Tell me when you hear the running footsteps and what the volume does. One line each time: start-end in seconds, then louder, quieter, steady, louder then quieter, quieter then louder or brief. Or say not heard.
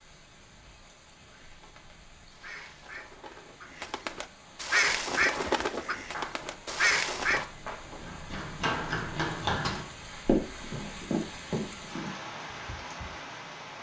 4.5-13.2 louder then quieter.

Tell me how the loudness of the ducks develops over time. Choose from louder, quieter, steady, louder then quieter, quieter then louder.
louder.